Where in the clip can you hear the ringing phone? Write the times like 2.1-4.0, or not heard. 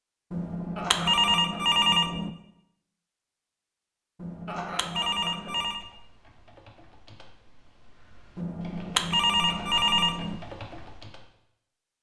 0.3-2.3, 4.2-5.8, 8.3-10.4.